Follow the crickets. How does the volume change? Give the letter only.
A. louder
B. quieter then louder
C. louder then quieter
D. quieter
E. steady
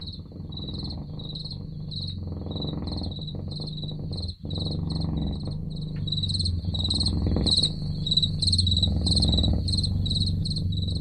A.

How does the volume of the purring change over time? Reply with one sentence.
The loudness of the purring goes up.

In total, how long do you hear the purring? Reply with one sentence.
You can hear the purring for 11 seconds altogether.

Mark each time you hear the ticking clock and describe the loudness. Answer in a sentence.
The ticking clock can't be heard in this clip.